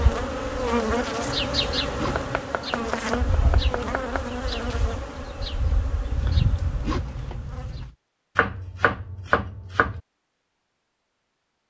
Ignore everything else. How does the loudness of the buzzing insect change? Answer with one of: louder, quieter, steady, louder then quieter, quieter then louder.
quieter.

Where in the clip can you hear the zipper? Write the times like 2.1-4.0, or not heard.
1.2-2.5, 6.1-8.0.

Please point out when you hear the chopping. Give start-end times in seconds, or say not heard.
2.1-4.2, 8.3-10.0.